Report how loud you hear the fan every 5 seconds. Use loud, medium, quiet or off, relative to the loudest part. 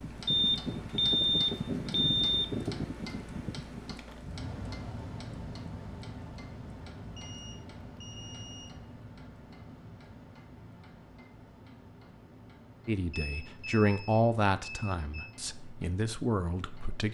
loud, medium, quiet, quiet.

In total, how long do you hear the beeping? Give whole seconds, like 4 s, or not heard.
6 s.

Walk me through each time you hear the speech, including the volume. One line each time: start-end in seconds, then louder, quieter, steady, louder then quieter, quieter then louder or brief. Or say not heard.
12.8-17.0 quieter then louder.